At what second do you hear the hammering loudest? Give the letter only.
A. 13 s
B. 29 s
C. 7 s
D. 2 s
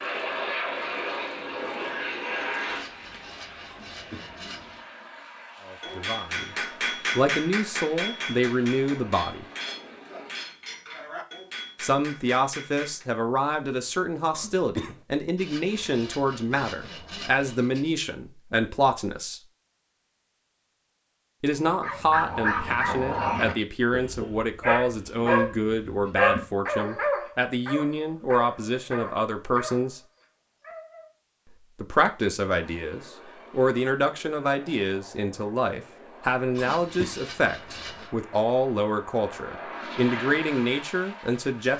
C.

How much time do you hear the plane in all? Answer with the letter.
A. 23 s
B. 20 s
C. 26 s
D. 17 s
B.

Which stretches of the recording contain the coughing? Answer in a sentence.
The coughing can be heard from 3.7 to 4.3 s, from 14.3 to 15.0 s and from 36.5 to 37.2 s.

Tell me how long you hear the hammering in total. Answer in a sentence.
You can hear the hammering for 7 seconds altogether.